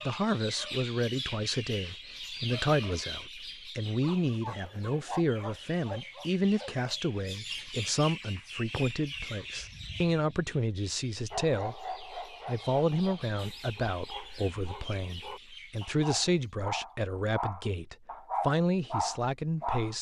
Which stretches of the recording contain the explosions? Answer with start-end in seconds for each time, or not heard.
not heard.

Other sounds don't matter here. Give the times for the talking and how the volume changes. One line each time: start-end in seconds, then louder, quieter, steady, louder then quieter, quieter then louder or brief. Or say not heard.
0.1-19.9 steady.